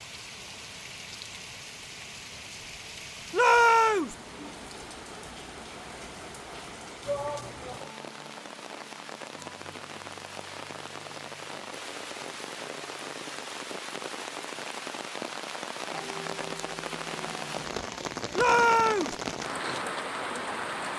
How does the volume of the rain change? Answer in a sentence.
The volume of the rain goes up.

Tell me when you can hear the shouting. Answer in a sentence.
You can hear the shouting from 3.3 to 4.2 s, from 7.0 to 7.9 s and from 18.4 to 19.1 s.